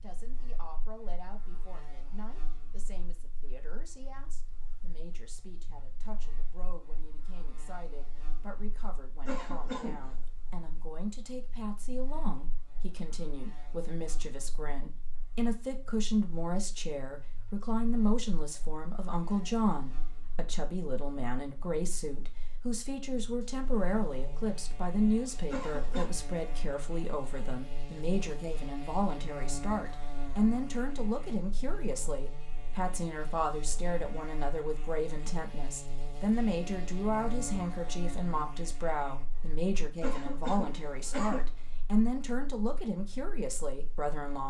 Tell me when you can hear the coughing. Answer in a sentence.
The coughing can be heard from 9.2 to 10.2 s, from 25.5 to 26.1 s and from 40.0 to 41.5 s.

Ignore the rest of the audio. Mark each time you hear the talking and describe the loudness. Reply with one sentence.
The talking can be heard from 0.0 to 44.4 s, getting louder.